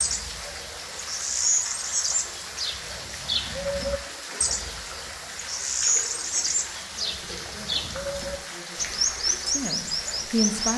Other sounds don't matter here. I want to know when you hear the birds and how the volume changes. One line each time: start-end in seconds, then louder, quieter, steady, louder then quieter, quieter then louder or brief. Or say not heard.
0.0-10.7 steady.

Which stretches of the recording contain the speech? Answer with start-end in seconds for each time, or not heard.
6.9-10.7.